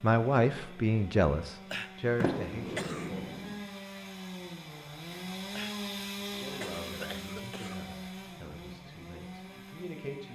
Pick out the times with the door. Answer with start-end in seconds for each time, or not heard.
2.1-3.5.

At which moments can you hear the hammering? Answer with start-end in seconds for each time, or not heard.
not heard.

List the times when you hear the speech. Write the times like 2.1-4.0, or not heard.
0.0-3.4, 6.2-10.3.